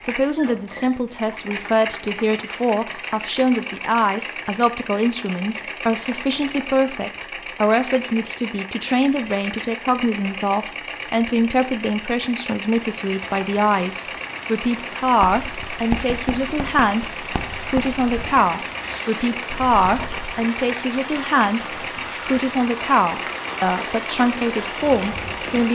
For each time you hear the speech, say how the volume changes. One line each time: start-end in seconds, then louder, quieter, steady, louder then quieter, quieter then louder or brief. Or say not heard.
0.0-25.7 steady.